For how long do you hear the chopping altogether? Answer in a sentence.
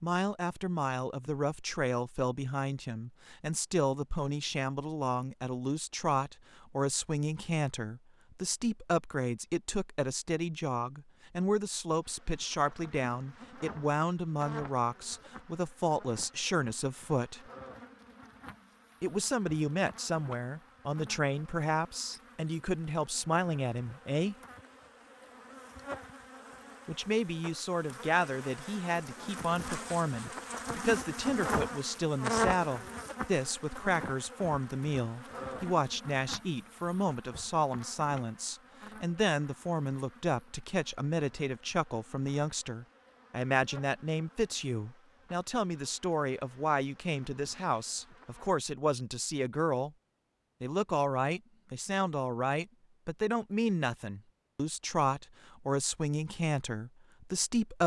The chopping can't be heard in this clip.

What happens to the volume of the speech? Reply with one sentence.
The volume of the speech stays about the same.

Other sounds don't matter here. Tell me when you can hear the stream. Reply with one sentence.
The stream can't be heard in this clip.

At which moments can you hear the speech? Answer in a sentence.
The speech can be heard from 0.0 to 17.4 s, from 19.0 to 24.4 s, from 26.9 to 49.9 s and from 50.6 to 57.8 s.